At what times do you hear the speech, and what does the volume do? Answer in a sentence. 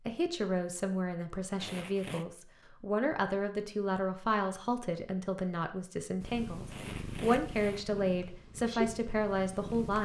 The speech can be heard from 0.1 to 9.9 s, at a steady volume.